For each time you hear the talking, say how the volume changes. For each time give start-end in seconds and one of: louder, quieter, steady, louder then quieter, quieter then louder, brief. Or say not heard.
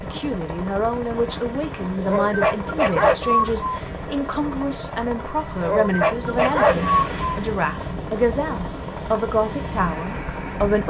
0.0-10.8 steady.